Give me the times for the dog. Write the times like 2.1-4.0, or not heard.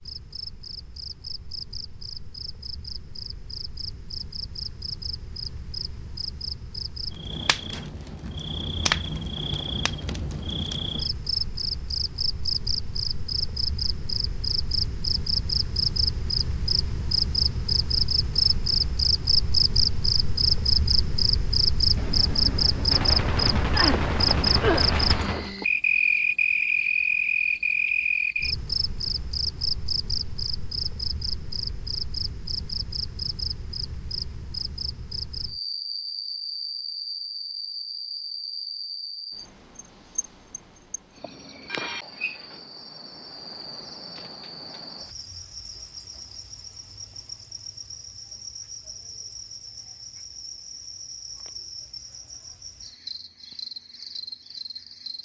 not heard.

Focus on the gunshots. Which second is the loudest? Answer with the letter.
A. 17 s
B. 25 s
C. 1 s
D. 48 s
B.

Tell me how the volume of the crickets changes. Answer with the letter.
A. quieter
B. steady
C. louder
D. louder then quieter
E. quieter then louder
D.